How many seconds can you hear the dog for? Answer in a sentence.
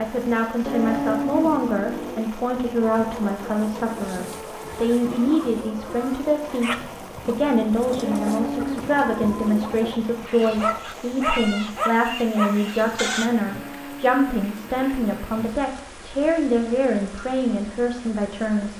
You can hear the dog for 3 seconds altogether.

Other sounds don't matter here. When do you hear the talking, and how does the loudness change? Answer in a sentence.
The talking can be heard from 0.0 to 18.7 s, at a steady volume.